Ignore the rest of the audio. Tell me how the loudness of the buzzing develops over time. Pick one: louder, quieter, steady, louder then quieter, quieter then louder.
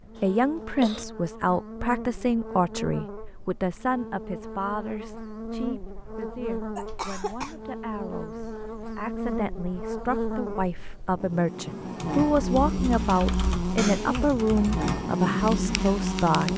louder.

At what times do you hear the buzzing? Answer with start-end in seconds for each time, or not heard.
0.0-16.5.